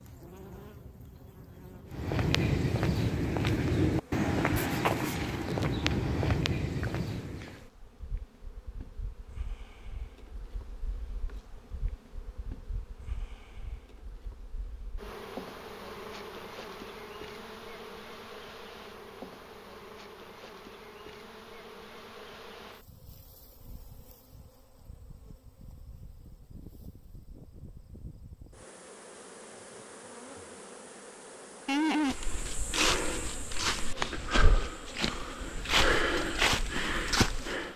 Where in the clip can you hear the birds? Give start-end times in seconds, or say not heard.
not heard.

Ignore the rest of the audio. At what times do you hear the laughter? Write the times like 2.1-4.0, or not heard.
31.6-32.1.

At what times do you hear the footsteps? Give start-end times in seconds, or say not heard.
1.9-7.6, 32.0-37.7.